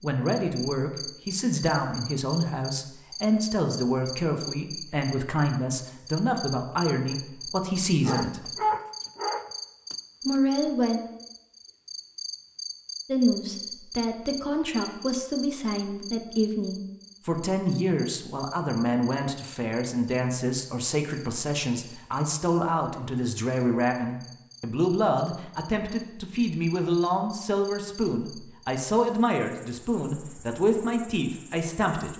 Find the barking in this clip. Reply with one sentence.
You can hear the barking from 8.0 to 9.9 s.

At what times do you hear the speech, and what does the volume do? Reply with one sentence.
The speech can be heard from 0.0 to 8.6 s, at a steady volume; briefly from 10.2 to 11.0 s; and from 13.1 to 32.1 s, at a steady volume.